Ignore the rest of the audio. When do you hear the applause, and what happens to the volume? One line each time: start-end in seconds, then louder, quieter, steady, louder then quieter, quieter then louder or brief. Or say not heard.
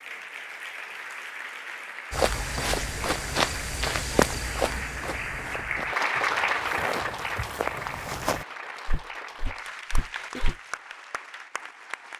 0.0-12.1 louder then quieter.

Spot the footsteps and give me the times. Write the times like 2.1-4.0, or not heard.
2.1-10.6.